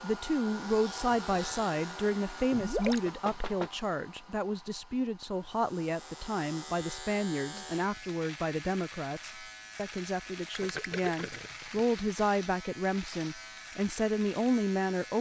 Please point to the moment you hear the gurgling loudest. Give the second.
3 s.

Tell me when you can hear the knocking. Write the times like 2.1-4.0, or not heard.
2.9-3.7.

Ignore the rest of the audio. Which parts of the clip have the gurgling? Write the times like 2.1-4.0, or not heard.
2.5-3.0, 10.5-11.8.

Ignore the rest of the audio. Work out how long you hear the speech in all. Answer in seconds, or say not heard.
15 s.